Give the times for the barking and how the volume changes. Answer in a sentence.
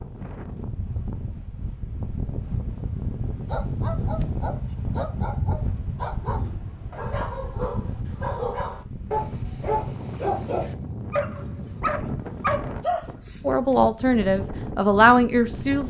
You can hear the barking from 3.5 to 13.4 s, getting louder.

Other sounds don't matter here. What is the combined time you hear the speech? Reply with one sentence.
The speech can be heard for 2 seconds in total.